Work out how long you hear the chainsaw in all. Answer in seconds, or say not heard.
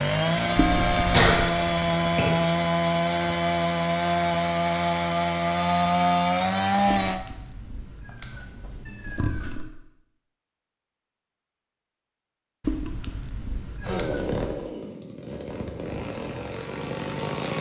11 s.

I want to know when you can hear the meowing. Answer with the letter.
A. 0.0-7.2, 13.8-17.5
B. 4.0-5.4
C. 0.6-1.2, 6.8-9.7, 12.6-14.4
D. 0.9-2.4
C.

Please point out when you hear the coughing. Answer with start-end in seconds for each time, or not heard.
0.9-2.4.